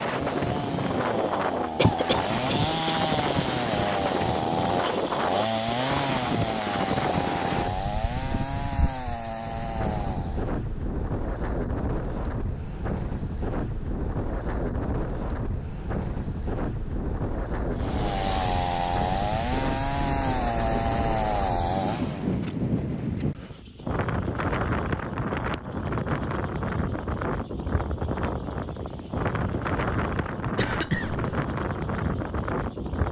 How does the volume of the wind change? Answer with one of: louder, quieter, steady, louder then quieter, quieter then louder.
steady.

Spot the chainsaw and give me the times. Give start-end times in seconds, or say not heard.
0.0-10.6, 17.7-22.4.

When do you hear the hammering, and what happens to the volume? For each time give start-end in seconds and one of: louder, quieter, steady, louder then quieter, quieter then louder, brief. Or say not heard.
not heard.